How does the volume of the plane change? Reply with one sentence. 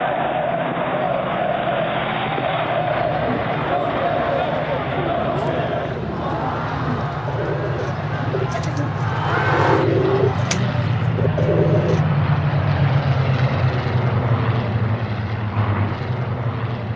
The loudness of the plane goes up.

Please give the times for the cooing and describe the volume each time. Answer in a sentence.
The cooing can be heard from 2.9 to 12.1 s, getting louder.